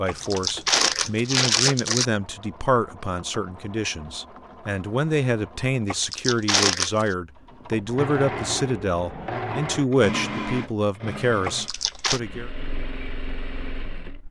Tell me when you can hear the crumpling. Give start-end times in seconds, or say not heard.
0.1-2.1, 5.8-7.0, 11.4-12.2.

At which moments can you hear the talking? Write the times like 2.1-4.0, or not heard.
0.0-12.5.